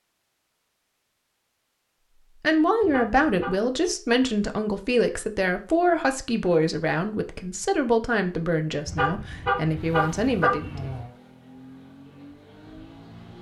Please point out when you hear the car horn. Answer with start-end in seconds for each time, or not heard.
2.8-3.5, 8.8-11.1.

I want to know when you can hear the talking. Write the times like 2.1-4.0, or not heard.
2.4-10.8.